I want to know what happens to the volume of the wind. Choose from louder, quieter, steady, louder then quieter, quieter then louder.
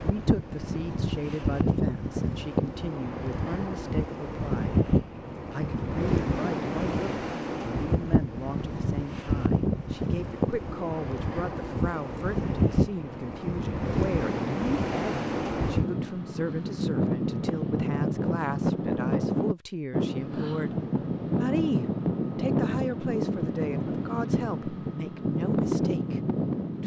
steady.